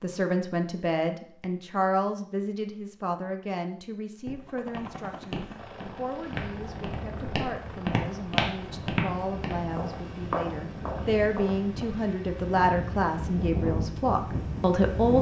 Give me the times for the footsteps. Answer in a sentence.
You can hear the footsteps from 4.2 to 12.0 s.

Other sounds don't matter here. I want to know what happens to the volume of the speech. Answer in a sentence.
The loudness of the speech goes down, then up.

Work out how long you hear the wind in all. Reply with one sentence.
You can hear the wind for 9 seconds altogether.